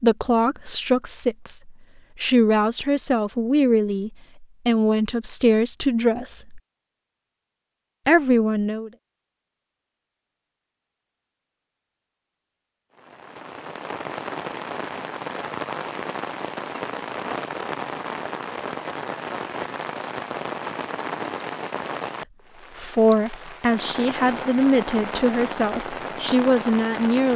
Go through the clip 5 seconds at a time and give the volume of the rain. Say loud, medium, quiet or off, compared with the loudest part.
off, off, loud, loud, loud, loud.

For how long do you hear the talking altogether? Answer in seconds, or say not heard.
12 s.